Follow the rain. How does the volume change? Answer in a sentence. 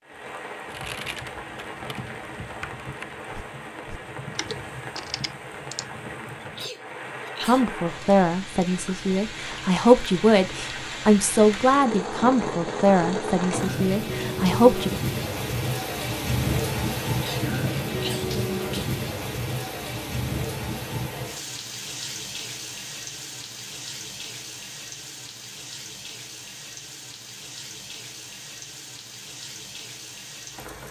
The volume of the rain goes up, then down.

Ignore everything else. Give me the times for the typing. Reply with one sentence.
You can hear the typing from 0.7 to 5.8 s.